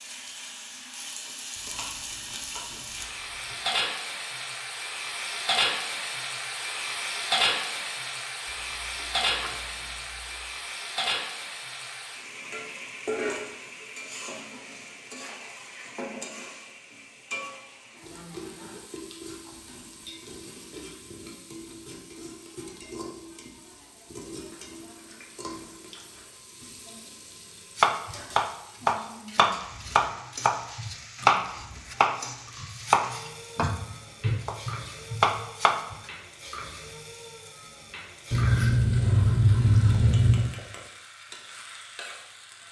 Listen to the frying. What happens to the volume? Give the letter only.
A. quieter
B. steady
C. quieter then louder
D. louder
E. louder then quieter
A.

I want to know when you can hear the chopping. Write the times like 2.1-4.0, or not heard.
27.8-36.0.